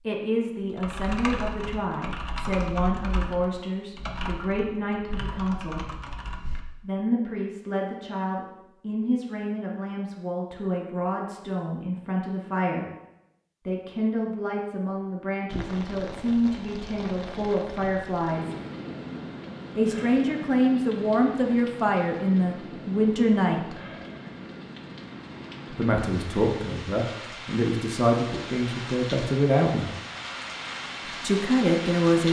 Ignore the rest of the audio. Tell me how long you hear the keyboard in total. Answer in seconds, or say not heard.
6 s.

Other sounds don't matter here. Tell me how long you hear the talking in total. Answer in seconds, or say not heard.
26 s.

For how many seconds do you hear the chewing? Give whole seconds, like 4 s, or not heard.
not heard.